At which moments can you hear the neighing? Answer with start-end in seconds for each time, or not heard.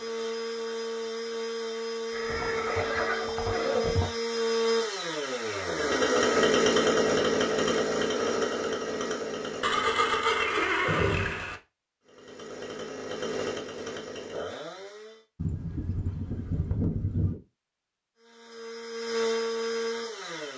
2.1-4.1, 9.6-11.6, 15.3-17.4.